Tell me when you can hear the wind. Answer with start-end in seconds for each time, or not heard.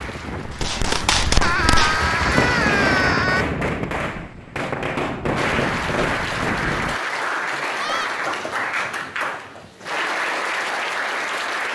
0.0-7.0.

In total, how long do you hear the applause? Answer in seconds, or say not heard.
9 s.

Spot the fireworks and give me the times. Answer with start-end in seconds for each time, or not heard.
0.5-6.7.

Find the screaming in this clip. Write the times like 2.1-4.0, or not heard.
1.4-3.5, 7.8-8.2.